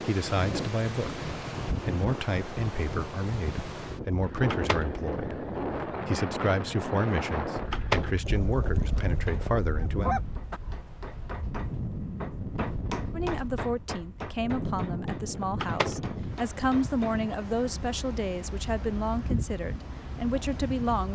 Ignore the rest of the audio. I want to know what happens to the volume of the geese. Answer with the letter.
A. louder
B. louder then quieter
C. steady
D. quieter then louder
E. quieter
A.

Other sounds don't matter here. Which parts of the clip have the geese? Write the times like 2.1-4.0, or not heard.
4.2-10.6.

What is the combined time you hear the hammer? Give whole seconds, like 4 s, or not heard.
8 s.